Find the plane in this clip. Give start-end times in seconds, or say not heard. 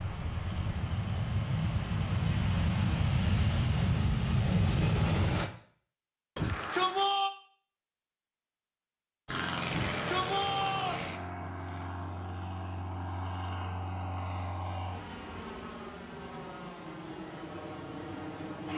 0.0-5.5, 9.2-18.7.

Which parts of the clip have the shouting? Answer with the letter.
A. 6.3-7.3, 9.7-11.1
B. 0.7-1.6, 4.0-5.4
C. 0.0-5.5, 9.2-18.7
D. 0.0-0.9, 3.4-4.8
A.